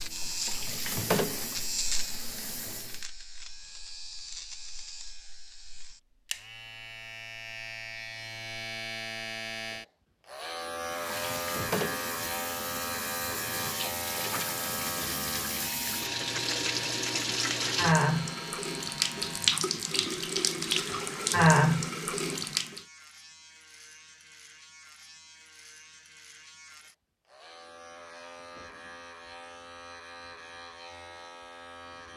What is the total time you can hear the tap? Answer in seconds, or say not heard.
15 s.